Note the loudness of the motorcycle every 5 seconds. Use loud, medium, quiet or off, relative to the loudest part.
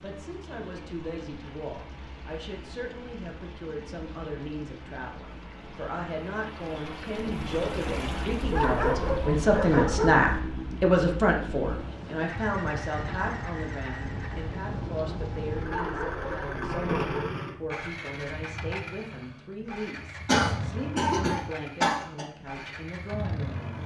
quiet, medium, loud, loud, loud.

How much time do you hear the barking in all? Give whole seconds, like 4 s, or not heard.
4 s.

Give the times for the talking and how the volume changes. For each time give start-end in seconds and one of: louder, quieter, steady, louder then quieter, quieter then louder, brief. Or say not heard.
0.0-23.8 louder then quieter.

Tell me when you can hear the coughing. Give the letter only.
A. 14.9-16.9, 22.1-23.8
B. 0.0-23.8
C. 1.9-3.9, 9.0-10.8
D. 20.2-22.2
D.